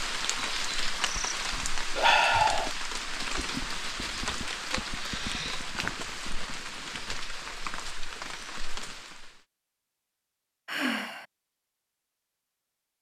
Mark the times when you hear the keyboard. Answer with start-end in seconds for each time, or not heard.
not heard.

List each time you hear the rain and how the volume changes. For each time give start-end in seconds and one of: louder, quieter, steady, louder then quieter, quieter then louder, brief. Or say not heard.
0.0-9.4 quieter.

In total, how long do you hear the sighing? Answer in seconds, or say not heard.
2 s.